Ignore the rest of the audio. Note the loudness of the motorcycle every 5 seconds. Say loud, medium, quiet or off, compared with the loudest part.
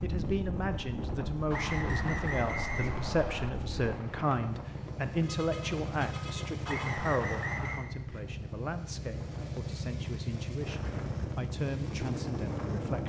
medium, loud, loud.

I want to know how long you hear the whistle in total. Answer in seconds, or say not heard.
3 s.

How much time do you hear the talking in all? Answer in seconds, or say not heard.
13 s.